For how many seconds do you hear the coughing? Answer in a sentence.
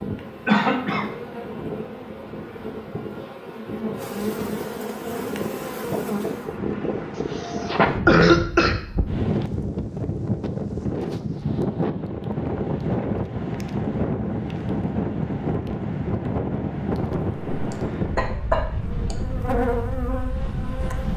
You can hear the coughing for 4 seconds altogether.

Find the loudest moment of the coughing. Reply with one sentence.
The loudest moment of the coughing is at 8 seconds.